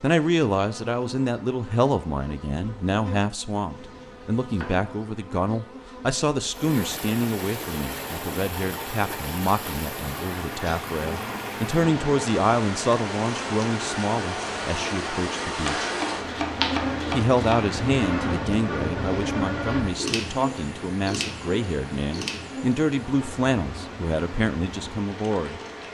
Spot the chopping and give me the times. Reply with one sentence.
The chopping can be heard from 3.7 to 4.9 s and from 15.6 to 17.7 s.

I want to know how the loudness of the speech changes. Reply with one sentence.
The volume of the speech stays about the same.